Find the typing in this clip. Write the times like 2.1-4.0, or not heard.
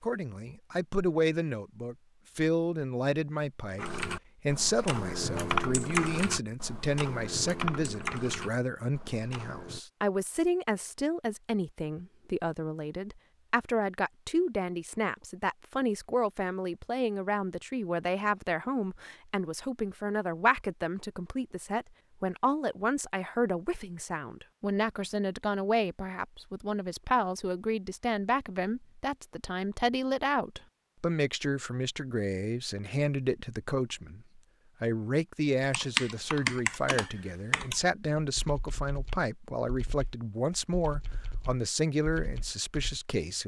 3.8-9.8, 35.6-43.0.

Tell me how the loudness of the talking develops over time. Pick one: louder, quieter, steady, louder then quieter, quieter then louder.
steady.